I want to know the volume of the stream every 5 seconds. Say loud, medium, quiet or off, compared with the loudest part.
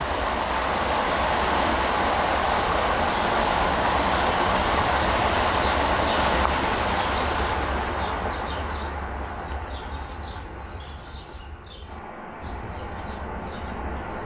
loud, loud, quiet.